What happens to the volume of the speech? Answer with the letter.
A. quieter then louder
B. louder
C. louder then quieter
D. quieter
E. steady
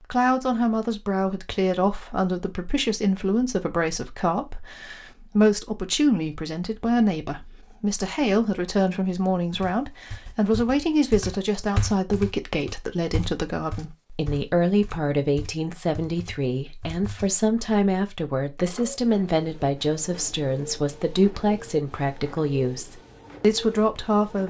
E.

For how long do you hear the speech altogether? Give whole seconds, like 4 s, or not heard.
24 s.